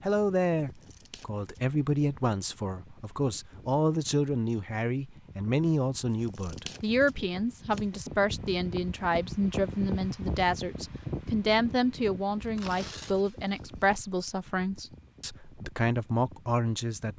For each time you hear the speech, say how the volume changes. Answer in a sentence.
You can hear the speech from 0.0 to 17.1 s, at a steady volume.